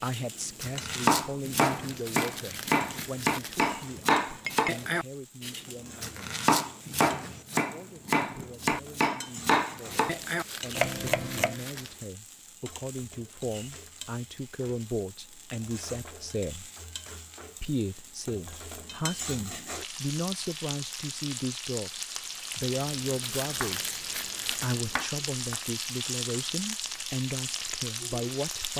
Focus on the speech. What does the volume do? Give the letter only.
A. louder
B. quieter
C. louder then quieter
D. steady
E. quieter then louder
E.